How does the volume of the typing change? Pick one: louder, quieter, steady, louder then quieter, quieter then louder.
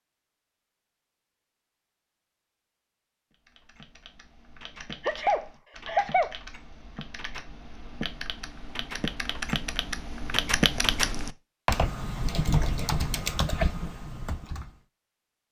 louder.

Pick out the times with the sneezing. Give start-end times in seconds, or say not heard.
5.0-6.3.